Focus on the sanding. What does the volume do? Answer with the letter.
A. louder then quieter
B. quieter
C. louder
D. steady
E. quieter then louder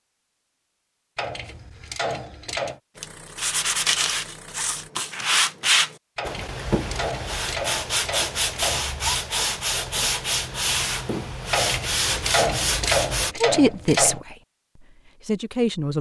D.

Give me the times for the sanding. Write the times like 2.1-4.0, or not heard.
3.0-13.3.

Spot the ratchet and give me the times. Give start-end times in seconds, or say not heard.
1.1-2.8, 6.2-8.9, 11.5-14.2.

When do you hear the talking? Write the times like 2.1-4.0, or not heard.
13.4-15.9.